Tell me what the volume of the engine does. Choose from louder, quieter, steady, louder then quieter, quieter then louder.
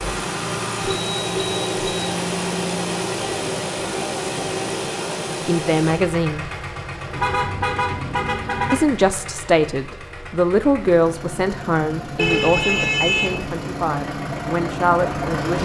quieter then louder.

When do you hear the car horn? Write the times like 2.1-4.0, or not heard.
0.8-2.1, 7.1-8.8, 12.2-13.4.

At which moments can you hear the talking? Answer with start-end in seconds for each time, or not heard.
5.5-6.5, 8.7-15.6.